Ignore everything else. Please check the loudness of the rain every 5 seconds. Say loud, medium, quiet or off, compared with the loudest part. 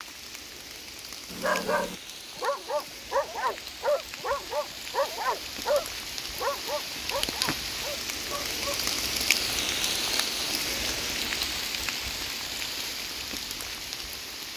medium, loud, loud.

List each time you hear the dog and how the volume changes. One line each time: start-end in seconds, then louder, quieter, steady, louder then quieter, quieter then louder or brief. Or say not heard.
1.3-8.8 quieter.